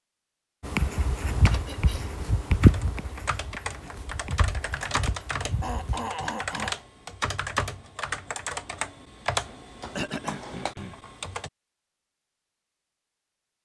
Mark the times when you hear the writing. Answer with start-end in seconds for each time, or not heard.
0.6-6.1.